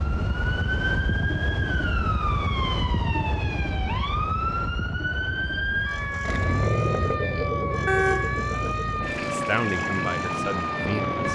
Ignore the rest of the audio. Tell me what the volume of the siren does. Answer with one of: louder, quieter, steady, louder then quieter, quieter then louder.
steady.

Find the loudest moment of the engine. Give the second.
7 s.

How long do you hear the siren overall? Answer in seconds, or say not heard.
11 s.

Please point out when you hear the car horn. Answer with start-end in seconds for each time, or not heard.
7.8-8.3.